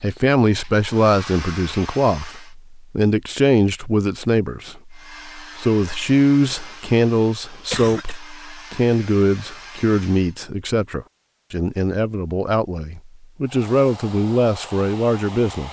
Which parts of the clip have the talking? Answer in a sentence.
You can hear the talking from 0.0 to 15.6 s.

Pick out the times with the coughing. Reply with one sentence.
You can hear the coughing from 7.5 to 8.2 s.